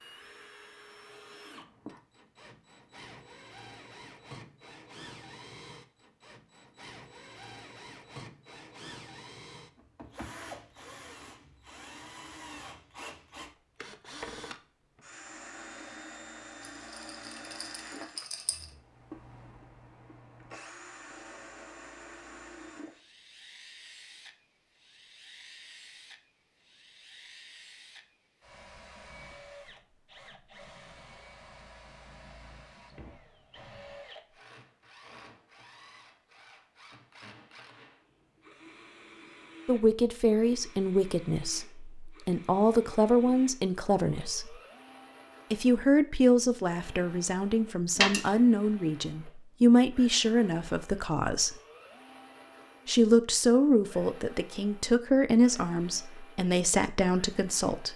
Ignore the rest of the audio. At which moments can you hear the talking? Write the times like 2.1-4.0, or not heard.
39.6-44.5, 45.5-51.5, 52.9-57.9.